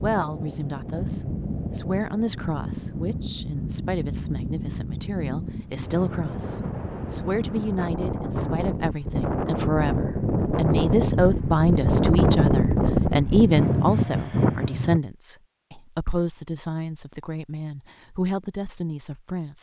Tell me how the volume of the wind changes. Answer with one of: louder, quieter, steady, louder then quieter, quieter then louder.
louder.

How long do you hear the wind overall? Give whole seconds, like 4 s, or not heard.
15 s.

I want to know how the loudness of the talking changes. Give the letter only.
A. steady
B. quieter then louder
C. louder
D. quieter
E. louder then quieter
E.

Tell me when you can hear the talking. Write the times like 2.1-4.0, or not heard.
0.0-19.5.